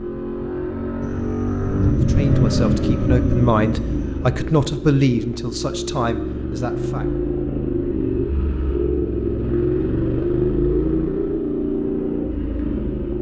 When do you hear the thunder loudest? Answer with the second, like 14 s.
2 s.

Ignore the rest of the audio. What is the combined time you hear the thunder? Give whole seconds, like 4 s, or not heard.
3 s.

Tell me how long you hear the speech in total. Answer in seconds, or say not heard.
5 s.